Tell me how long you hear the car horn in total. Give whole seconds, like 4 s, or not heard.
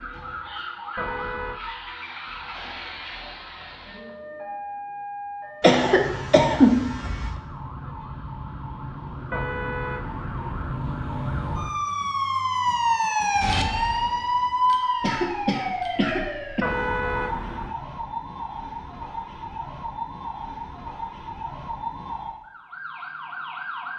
3 s.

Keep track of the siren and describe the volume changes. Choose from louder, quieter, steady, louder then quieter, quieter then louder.
louder then quieter.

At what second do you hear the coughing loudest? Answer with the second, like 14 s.
7 s.